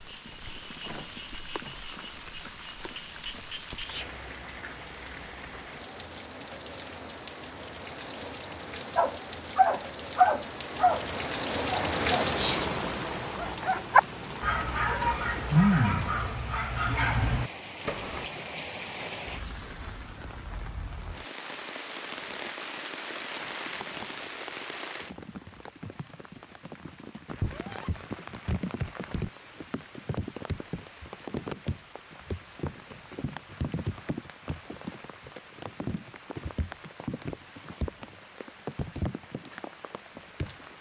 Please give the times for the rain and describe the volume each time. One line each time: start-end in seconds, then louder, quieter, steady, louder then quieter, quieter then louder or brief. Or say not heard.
0.0-40.7 louder then quieter.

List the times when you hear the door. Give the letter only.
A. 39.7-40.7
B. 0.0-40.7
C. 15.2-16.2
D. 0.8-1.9
D.